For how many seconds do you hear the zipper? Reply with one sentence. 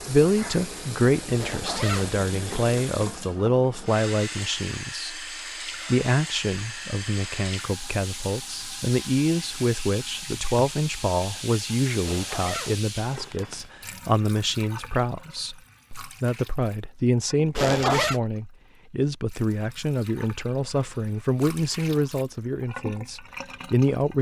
You can hear the zipper for 4 seconds altogether.